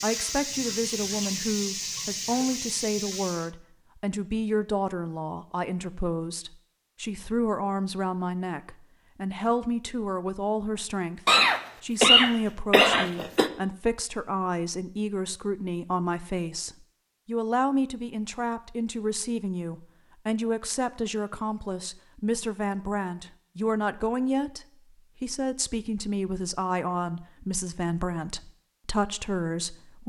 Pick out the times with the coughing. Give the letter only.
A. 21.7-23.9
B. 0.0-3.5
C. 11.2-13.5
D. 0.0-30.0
C.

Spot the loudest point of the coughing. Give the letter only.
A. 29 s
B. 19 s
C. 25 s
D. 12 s
D.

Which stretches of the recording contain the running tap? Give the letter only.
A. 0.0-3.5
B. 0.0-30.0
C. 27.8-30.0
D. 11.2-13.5
A.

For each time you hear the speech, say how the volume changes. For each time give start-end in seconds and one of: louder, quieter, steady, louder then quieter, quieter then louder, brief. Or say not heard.
0.0-30.0 steady.